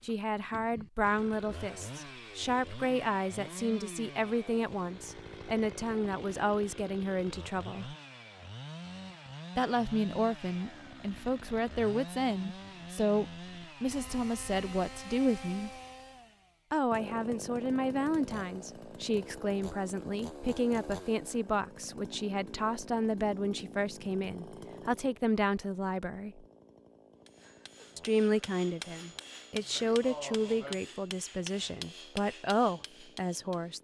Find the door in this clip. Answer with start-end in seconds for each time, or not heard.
not heard.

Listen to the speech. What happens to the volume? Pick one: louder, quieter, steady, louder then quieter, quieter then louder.
steady.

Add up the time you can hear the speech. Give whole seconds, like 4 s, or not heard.
30 s.